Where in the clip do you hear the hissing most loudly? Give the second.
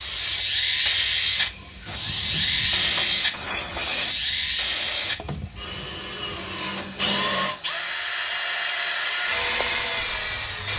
1 s.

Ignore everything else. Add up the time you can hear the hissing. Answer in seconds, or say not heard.
11 s.